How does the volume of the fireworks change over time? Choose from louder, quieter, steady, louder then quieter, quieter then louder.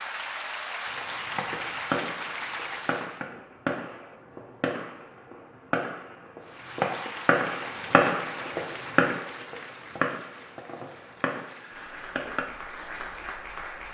louder then quieter.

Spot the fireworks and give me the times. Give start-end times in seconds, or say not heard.
0.8-12.4.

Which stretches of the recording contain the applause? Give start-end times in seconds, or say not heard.
0.0-3.2, 6.4-13.8.